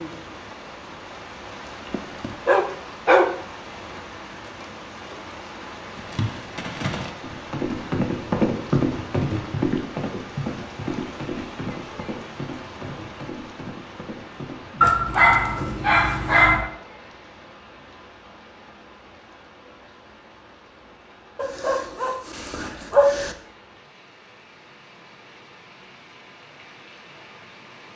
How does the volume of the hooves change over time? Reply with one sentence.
The volume of the hooves goes up, then down.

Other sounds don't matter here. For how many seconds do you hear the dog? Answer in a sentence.
You can hear the dog for 5 seconds altogether.